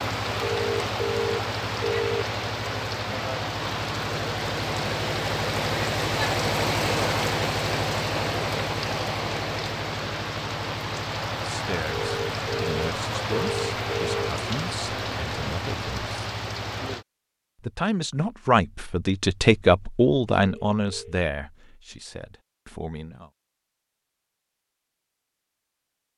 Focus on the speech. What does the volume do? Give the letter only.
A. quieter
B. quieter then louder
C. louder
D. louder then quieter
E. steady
D.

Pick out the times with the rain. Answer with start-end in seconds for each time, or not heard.
0.0-17.1.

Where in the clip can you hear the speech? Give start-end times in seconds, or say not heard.
11.4-16.1, 17.6-23.3.